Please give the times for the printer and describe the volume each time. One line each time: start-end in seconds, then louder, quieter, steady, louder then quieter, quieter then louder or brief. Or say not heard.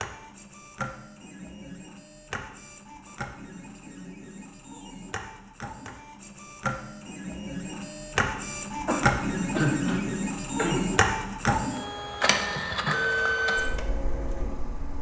0.0-14.9 louder.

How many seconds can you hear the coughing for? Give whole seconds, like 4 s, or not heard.
2 s.